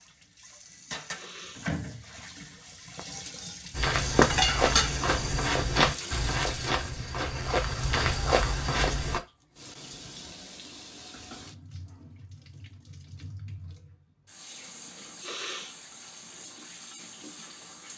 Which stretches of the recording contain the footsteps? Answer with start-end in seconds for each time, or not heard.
3.7-9.2.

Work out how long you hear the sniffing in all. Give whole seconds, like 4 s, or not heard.
2 s.